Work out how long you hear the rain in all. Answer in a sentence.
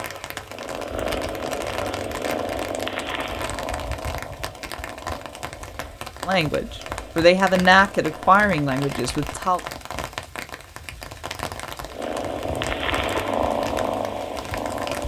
The rain can be heard for 15 seconds in total.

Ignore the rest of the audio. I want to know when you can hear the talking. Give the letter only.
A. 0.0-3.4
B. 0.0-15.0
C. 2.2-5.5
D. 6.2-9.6
D.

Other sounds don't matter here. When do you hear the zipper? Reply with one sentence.
The zipper can't be heard in this clip.